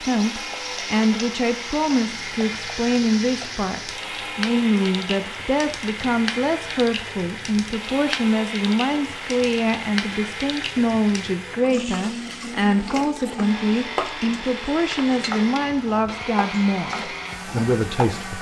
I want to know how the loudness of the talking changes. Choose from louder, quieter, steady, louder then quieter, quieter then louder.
steady.